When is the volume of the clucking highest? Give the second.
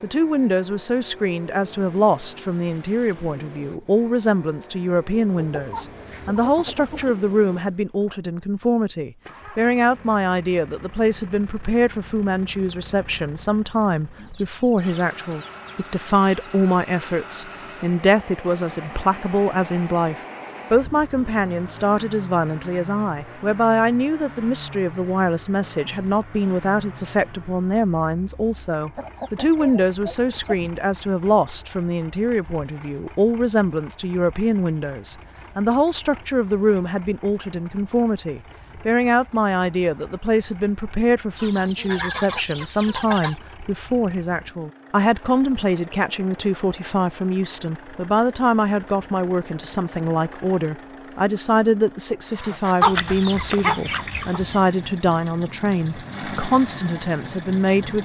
53 s.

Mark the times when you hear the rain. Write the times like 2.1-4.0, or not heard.
not heard.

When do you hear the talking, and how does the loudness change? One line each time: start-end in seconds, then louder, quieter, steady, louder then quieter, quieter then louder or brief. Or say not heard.
0.0-58.0 steady.